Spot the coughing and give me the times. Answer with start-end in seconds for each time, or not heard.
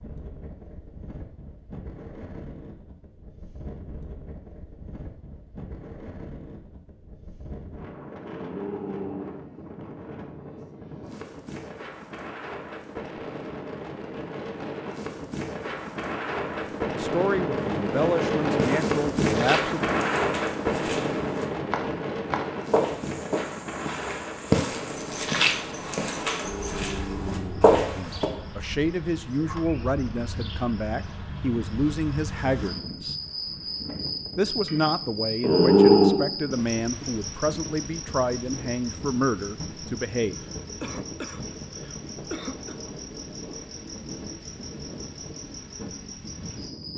40.3-42.8.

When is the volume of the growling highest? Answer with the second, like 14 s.
36 s.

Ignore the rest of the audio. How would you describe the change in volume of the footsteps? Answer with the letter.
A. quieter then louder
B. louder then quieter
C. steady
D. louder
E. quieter
D.